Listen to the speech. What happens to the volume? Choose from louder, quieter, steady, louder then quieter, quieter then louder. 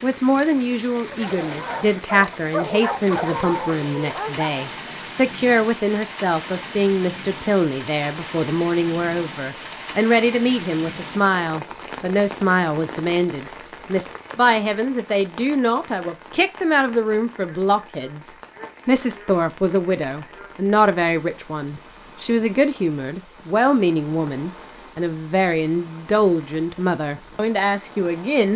steady.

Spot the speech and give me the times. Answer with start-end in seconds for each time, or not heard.
0.0-28.5.